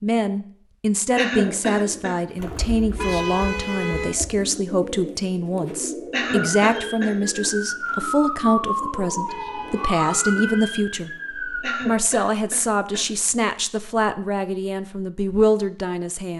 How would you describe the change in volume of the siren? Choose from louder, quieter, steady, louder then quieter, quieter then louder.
louder then quieter.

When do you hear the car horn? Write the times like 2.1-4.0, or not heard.
3.0-4.2, 9.2-10.8.